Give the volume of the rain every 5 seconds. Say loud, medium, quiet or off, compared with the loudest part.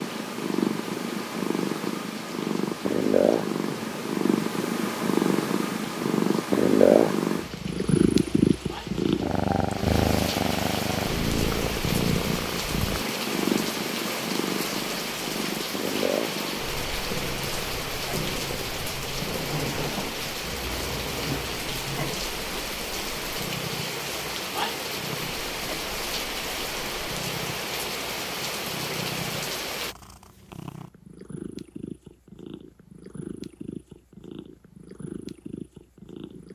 medium, medium, loud, loud, loud, loud, off, off.